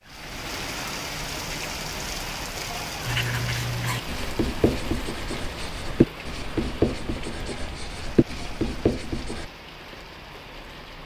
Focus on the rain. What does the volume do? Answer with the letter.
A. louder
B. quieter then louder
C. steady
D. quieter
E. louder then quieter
D.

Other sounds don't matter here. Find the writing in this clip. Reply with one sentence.
The writing can be heard from 3.0 to 9.5 s.